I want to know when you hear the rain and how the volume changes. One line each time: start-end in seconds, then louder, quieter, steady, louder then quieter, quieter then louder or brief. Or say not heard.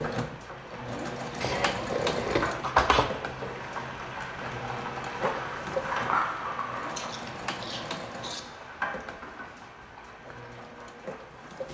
0.0-11.6 louder then quieter.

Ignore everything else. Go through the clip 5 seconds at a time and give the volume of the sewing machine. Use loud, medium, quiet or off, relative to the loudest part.
loud, loud, medium.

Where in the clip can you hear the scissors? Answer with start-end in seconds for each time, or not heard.
1.4-3.1, 6.9-8.4.